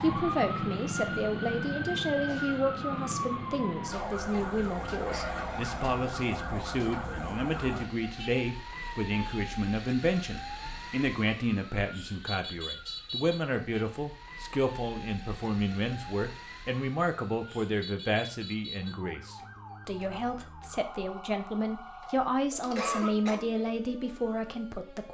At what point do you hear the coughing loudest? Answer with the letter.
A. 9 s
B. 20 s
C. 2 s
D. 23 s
D.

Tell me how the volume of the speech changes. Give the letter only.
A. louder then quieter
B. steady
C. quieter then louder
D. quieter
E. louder
B.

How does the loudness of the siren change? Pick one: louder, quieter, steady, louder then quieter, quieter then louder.
quieter.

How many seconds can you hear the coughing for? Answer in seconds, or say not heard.
2 s.